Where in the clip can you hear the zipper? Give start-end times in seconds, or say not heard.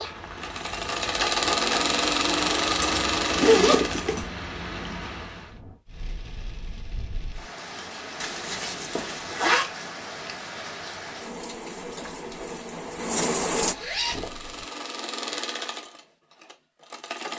2.8-4.2, 8.2-9.7, 13.6-14.7.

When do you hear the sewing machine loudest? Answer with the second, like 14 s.
2 s.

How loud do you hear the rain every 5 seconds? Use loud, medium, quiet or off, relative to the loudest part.
medium, medium, loud, off.